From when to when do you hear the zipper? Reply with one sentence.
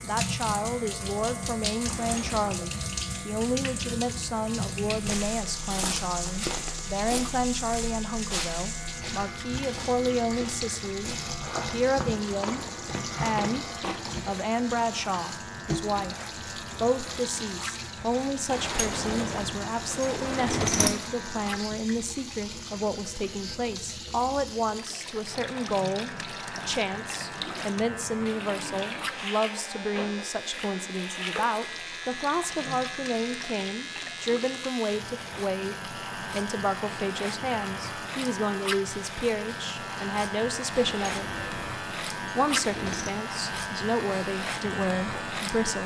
You can't hear the zipper here.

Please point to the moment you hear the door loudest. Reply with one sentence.
The volume of the door peaks at 21 seconds.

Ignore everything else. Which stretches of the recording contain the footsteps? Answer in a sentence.
The footsteps can be heard from 4.9 to 14.0 s.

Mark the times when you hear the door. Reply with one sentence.
You can hear the door from 1.9 to 2.6 s, from 18.4 to 21.0 s and from 40.9 to 43.1 s.